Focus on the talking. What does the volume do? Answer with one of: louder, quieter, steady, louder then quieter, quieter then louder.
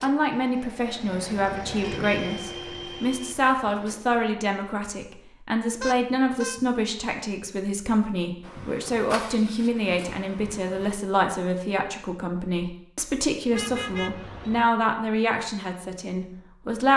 steady.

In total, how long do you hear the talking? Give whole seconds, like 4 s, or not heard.
17 s.